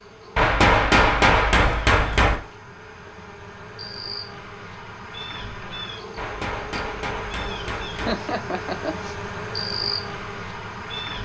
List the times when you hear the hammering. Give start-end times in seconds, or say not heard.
0.3-2.4, 6.2-8.2.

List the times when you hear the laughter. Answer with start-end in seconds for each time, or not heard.
8.0-9.2.